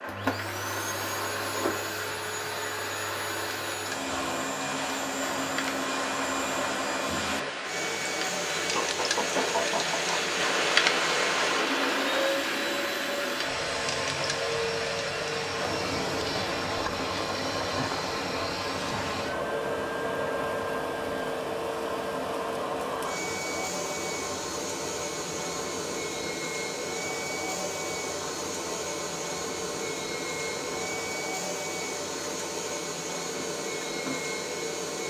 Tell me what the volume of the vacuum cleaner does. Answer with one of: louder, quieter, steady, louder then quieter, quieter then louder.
steady.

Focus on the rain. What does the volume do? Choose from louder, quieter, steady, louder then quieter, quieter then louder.
louder then quieter.